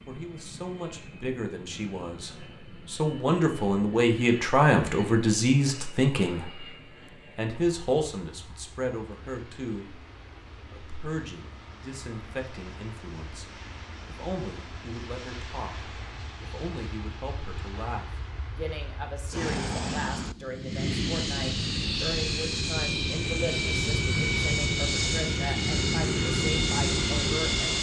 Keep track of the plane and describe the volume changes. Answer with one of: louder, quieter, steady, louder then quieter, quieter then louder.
louder.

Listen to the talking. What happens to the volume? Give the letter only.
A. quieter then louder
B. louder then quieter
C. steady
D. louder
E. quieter
E.